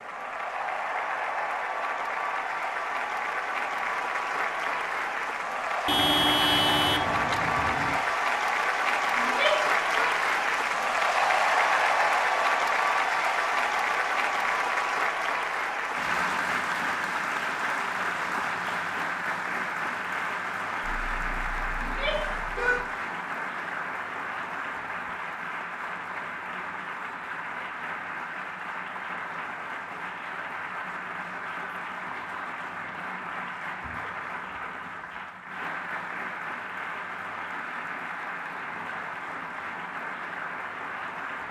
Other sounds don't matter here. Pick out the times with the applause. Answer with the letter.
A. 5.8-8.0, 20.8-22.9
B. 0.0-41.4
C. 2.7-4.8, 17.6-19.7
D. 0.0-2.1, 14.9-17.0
B.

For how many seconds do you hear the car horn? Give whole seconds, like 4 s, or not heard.
4 s.